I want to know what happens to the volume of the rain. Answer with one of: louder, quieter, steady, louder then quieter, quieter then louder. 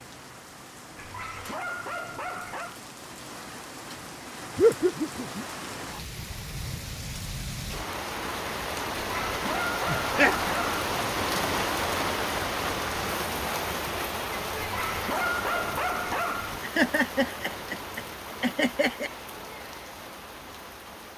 louder then quieter.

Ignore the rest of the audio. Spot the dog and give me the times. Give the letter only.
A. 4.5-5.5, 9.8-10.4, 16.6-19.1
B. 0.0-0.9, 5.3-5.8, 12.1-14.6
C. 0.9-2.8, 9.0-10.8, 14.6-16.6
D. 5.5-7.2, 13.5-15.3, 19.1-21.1
C.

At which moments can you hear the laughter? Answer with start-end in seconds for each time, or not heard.
4.5-5.5, 9.8-10.4, 16.6-19.1.